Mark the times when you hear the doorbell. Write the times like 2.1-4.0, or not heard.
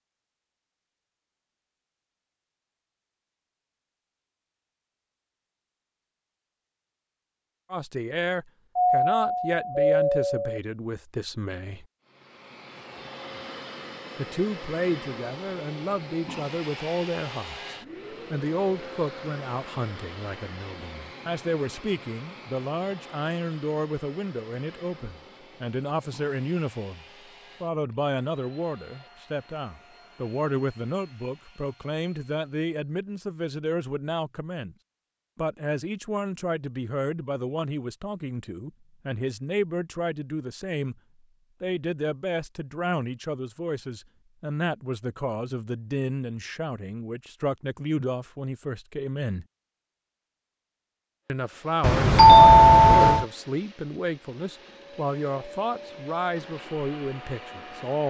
8.8-10.6, 51.8-53.2.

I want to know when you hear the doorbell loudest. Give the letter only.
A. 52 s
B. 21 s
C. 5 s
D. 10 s
A.